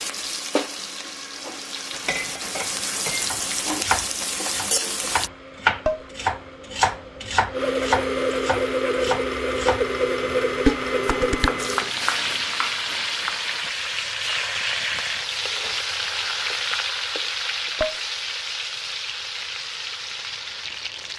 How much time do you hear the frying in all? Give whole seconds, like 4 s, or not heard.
15 s.